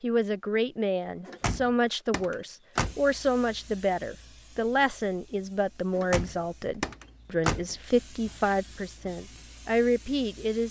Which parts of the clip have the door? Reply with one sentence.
You can hear the door from 1.2 to 3.0 s and from 6.0 to 7.8 s.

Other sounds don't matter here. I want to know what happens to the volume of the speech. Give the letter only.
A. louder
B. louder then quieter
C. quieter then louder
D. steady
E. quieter
D.